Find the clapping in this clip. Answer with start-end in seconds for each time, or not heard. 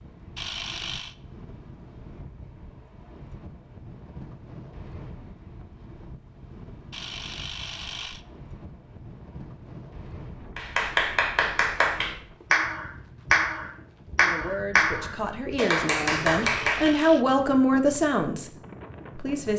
10.6-16.9.